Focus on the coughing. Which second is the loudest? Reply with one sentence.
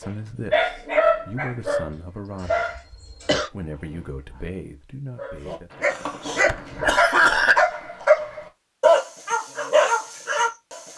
The loudest moment of the coughing is at 7 seconds.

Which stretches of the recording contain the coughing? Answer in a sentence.
The coughing can be heard from 1.9 to 3.5 s and from 5.9 to 7.7 s.